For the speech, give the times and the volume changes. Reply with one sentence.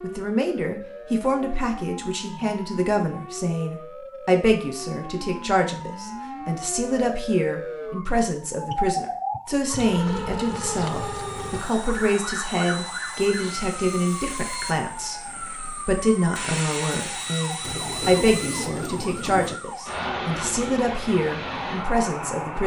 You can hear the speech from 0.0 to 22.6 s, at a steady volume.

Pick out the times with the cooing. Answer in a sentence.
The cooing can be heard from 17.6 to 19.6 s.